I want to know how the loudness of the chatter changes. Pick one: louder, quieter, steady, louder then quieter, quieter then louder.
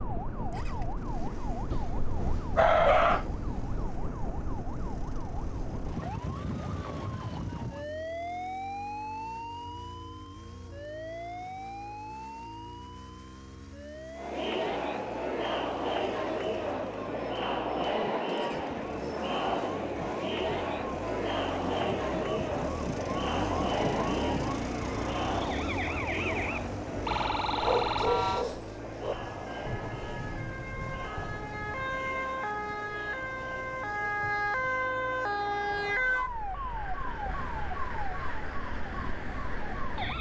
quieter.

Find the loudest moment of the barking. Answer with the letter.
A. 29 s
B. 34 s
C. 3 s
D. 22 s
C.